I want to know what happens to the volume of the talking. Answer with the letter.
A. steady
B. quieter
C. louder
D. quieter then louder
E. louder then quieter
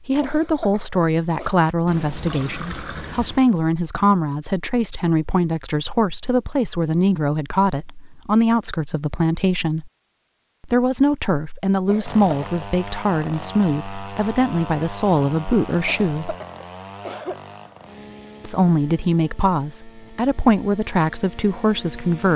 A.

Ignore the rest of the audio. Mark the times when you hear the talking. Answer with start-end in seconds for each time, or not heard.
0.1-9.9, 10.6-16.4, 18.4-22.3.